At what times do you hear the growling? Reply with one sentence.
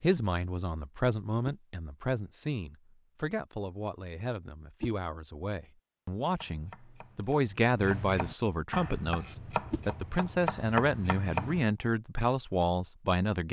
The growling can't be heard in this clip.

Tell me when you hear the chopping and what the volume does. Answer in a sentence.
The chopping can be heard from 6.3 to 11.7 s, getting louder.